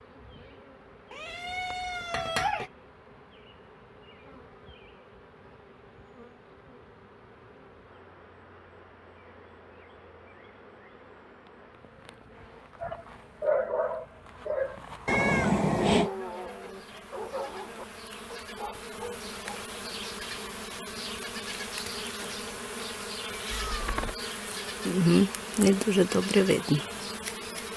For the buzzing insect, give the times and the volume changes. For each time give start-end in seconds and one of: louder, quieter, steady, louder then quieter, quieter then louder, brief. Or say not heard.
0.0-27.7 louder.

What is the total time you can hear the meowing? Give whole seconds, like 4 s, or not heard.
3 s.